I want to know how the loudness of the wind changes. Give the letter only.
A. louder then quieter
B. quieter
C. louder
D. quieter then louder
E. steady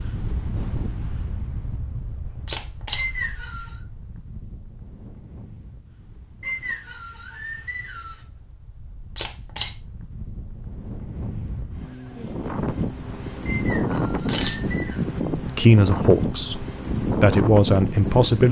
D.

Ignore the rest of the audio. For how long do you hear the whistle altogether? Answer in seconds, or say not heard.
4 s.